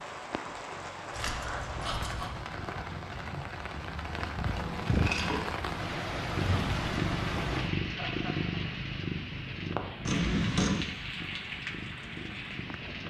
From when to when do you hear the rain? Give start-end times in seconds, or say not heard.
0.0-13.0.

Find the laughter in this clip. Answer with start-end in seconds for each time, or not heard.
1.8-2.5, 7.5-8.6.